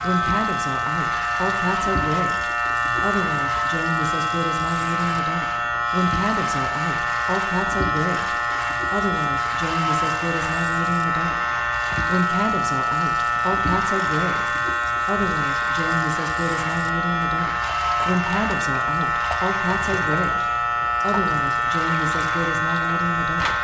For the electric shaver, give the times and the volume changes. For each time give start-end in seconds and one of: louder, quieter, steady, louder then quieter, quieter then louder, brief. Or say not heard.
0.0-23.5 steady.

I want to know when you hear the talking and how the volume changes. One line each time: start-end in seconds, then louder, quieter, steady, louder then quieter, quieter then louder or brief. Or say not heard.
0.0-11.3 steady
12.1-23.5 steady.